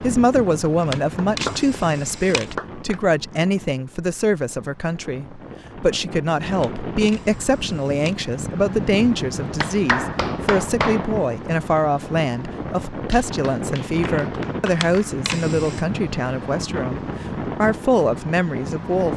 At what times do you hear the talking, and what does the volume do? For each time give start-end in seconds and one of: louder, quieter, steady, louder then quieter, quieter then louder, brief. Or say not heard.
0.0-19.1 steady.